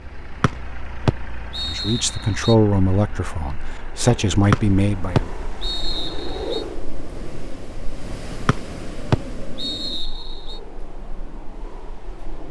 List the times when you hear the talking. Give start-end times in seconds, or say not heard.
1.6-5.3.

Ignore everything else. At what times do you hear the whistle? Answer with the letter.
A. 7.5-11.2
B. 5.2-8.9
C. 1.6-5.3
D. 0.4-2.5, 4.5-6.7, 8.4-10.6
D.